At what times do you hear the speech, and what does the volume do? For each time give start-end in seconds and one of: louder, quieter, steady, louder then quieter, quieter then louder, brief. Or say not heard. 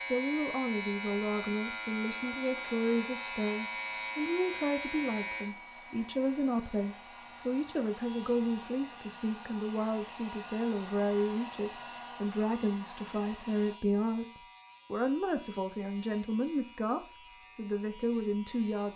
0.0-18.9 steady.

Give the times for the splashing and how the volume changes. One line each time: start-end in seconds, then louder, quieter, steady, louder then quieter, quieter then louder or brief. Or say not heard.
not heard.